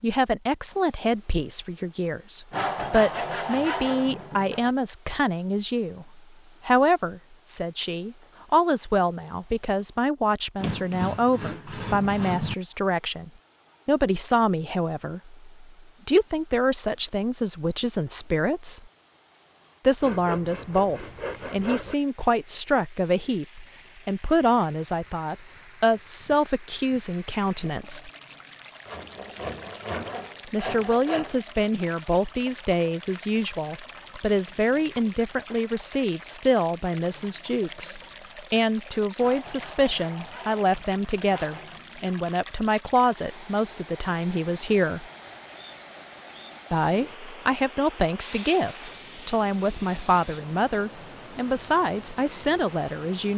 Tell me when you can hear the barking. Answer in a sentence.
The barking can't be heard in this clip.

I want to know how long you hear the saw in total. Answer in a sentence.
You can hear the saw for 14 seconds altogether.